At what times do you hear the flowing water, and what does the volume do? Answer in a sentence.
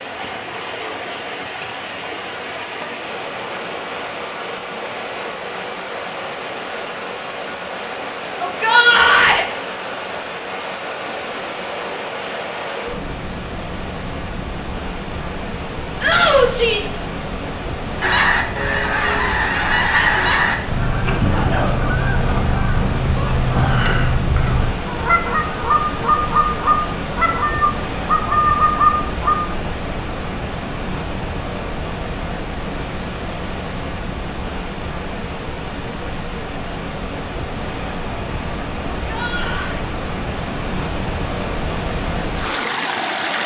The flowing water can be heard from 0.0 to 43.4 s, at a steady volume.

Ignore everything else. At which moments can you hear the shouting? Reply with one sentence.
The shouting can be heard from 8.3 to 9.4 s, from 16.0 to 16.9 s and from 39.0 to 39.8 s.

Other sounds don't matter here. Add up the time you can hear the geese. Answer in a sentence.
You can hear the geese for 11 seconds altogether.